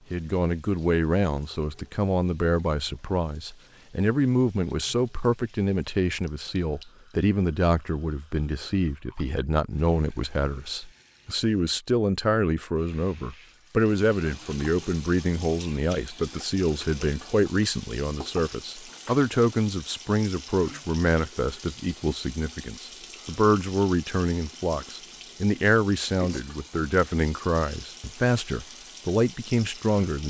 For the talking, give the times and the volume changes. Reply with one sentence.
You can hear the talking from 0.1 to 30.2 s, at a steady volume.